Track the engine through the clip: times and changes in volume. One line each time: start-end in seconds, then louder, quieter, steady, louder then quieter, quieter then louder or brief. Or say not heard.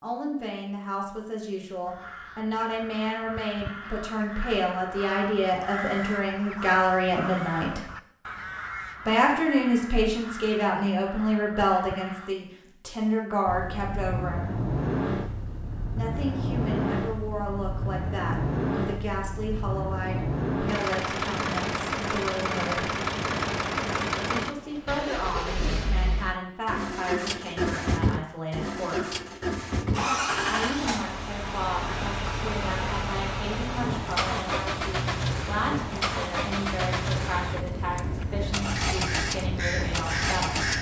13.4-40.7 steady.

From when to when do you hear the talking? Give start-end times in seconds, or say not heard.
0.0-7.8, 9.1-14.6, 15.9-22.9, 24.3-29.1, 30.4-40.6.